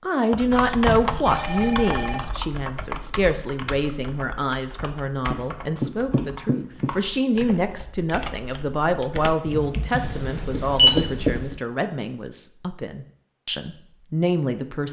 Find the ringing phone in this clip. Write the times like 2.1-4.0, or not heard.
1.2-2.2, 9.9-11.0.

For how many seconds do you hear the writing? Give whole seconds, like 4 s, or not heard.
5 s.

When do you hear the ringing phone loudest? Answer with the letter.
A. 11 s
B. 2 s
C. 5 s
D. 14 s
A.